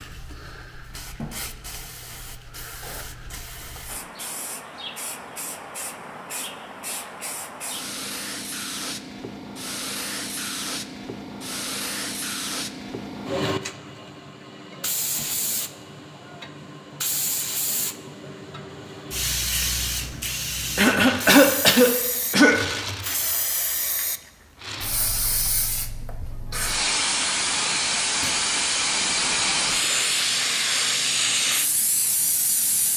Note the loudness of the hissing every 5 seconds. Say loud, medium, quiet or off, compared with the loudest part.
quiet, medium, medium, medium, medium, loud, loud.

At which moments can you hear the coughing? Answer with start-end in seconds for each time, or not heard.
20.8-22.6.